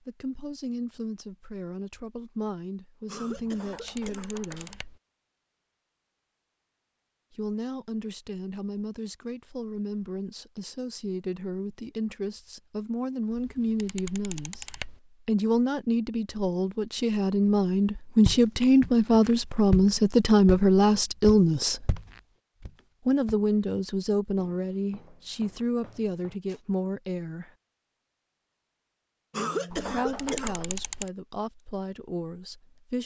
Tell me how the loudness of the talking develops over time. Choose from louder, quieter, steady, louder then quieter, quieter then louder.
louder then quieter.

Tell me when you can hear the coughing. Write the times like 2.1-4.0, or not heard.
3.0-4.8, 29.3-30.6.